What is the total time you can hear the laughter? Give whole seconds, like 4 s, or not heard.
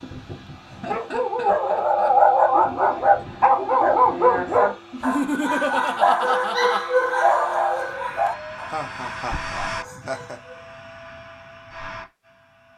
5 s.